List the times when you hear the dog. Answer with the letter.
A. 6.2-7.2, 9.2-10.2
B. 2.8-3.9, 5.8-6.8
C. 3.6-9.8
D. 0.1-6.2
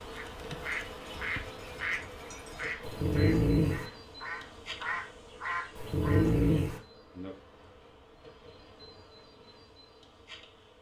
B.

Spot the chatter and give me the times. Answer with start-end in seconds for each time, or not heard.
not heard.